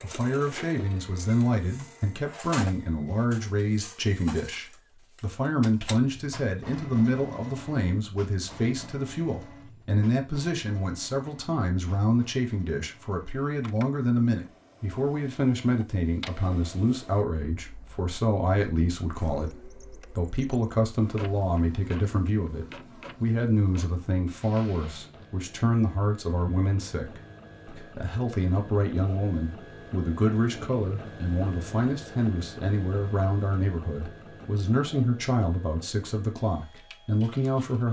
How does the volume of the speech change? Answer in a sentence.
The loudness of the speech stays about the same.